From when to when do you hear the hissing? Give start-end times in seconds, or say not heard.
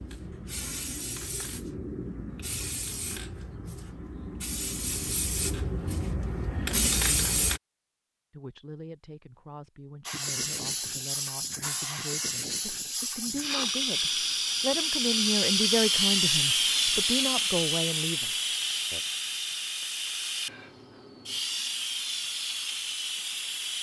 0.0-7.6, 10.1-23.7.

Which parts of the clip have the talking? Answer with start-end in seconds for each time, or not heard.
8.3-19.0.